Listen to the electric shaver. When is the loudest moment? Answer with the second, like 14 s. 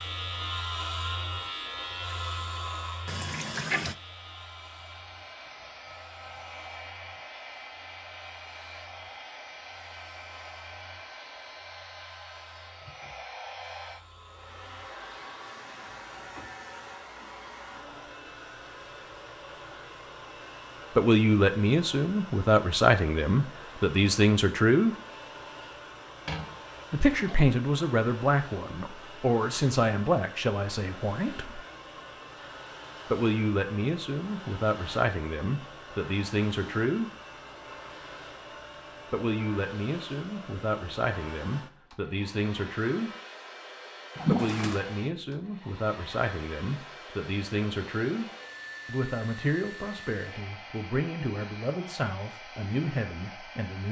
1 s.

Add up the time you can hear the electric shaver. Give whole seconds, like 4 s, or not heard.
17 s.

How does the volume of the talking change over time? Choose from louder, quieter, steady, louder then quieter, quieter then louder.
quieter.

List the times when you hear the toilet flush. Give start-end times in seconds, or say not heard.
3.0-4.0, 26.2-27.4, 44.1-44.8.